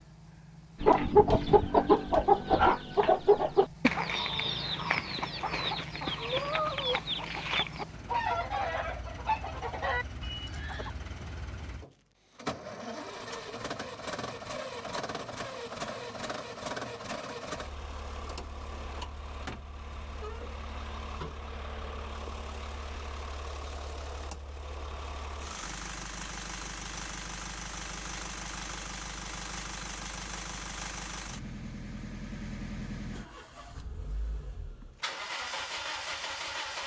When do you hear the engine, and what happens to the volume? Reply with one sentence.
The engine can be heard from 0.0 to 36.8 s, getting louder.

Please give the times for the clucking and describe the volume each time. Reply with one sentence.
You can hear the clucking from 0.8 to 10.9 s, getting quieter.